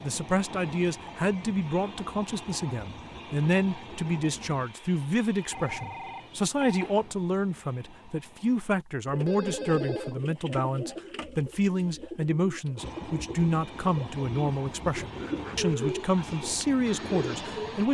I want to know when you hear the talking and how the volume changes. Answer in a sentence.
The talking can be heard from 0.0 to 17.8 s, at a steady volume.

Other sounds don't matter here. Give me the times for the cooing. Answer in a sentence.
The cooing can be heard from 9.1 to 17.8 s.